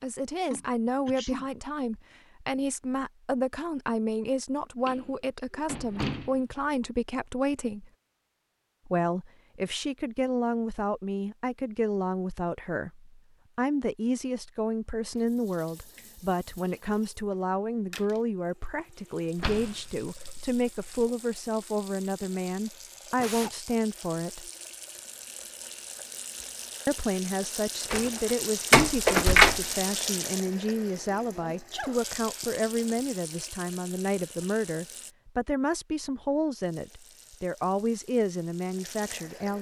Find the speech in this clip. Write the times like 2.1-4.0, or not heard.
0.0-7.9, 8.8-24.5, 26.9-39.5.